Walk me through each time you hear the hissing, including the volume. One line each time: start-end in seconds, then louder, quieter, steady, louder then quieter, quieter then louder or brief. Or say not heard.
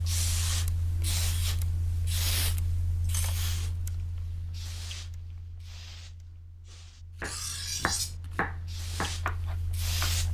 0.0-10.2 quieter then louder.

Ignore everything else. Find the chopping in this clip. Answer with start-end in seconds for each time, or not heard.
7.2-10.2.